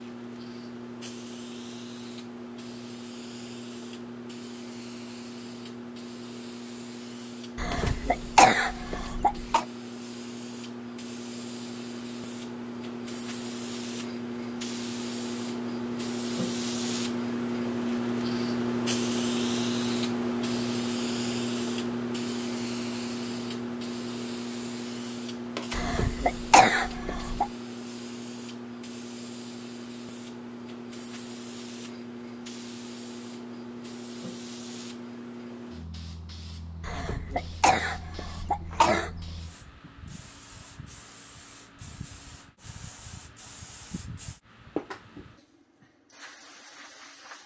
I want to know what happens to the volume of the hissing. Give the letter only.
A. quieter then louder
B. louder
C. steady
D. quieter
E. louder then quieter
E.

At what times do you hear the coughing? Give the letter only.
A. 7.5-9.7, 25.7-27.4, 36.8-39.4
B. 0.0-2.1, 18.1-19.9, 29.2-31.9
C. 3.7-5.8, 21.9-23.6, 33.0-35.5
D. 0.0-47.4
A.